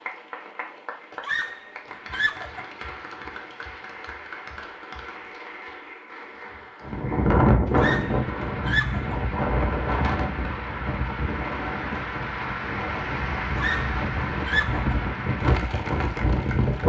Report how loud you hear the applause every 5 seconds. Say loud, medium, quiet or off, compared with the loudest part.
medium, medium, loud, loud.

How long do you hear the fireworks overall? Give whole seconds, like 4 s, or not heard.
not heard.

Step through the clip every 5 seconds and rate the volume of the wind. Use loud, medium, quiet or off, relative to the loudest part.
off, loud, medium, loud.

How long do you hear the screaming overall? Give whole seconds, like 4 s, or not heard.
4 s.